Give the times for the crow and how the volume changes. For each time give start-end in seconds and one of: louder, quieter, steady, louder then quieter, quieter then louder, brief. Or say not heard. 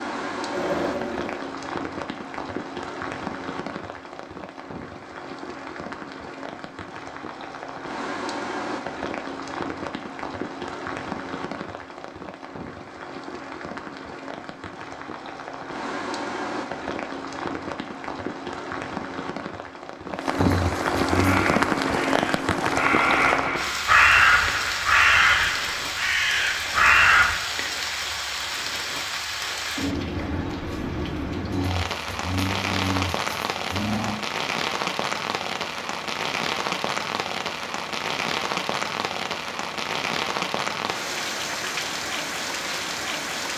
21.1-27.5 louder.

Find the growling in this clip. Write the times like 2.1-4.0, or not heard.
0.5-1.4, 20.4-21.6, 31.5-34.1.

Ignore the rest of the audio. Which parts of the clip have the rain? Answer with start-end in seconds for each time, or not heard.
0.0-43.5.